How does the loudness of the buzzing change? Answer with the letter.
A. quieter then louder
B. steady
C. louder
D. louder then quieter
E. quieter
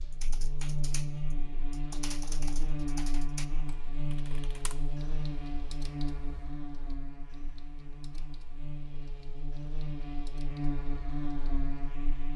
A.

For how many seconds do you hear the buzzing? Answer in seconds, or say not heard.
12 s.